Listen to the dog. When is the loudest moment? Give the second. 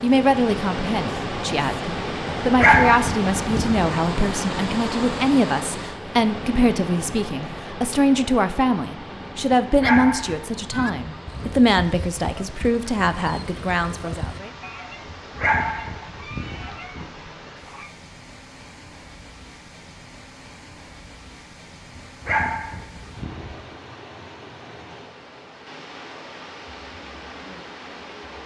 3 s.